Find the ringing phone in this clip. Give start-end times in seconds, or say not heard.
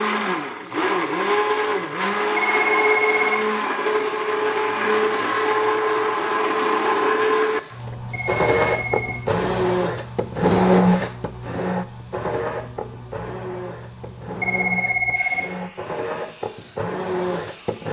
2.4-3.4, 8.1-9.2, 14.4-15.4.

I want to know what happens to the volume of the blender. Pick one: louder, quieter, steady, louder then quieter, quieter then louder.
quieter.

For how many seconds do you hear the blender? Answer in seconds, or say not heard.
18 s.